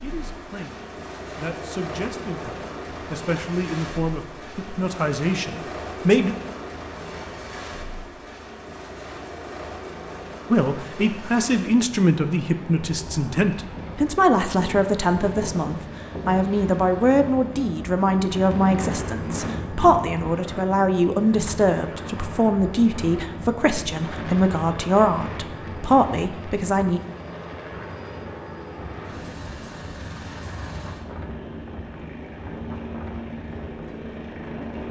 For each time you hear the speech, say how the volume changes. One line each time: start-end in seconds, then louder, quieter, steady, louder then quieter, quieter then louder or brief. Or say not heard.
0.0-6.3 louder
10.5-27.0 steady.